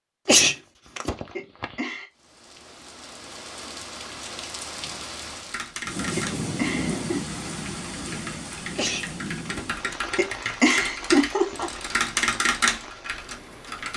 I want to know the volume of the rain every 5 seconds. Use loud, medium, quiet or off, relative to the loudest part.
medium, loud, medium.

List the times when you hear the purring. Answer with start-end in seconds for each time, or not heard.
not heard.